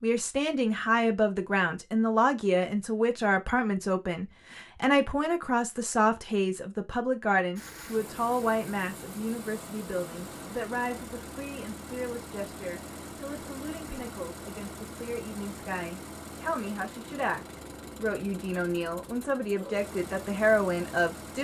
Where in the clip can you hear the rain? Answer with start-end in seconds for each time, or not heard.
not heard.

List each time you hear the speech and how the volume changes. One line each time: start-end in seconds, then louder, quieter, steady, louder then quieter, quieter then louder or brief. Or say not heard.
0.0-21.3 quieter then louder.